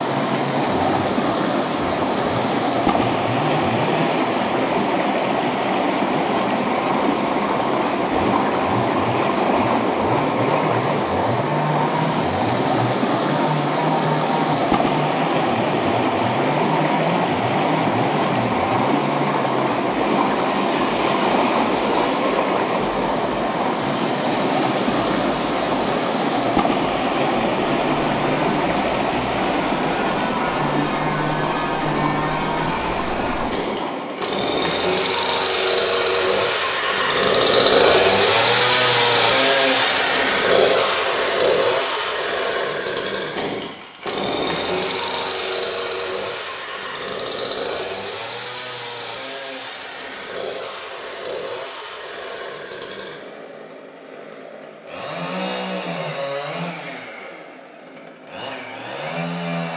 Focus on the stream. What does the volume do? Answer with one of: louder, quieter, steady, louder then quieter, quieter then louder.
steady.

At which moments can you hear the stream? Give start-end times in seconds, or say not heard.
0.0-34.4.